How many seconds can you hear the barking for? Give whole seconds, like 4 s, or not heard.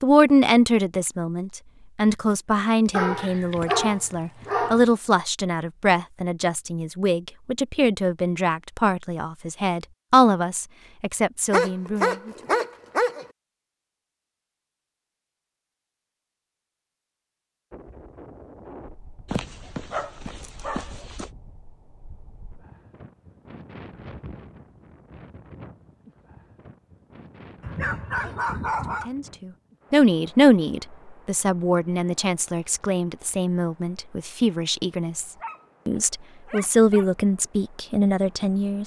9 s.